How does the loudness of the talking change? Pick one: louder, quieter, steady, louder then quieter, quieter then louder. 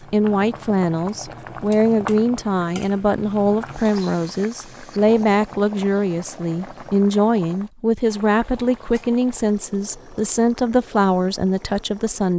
steady.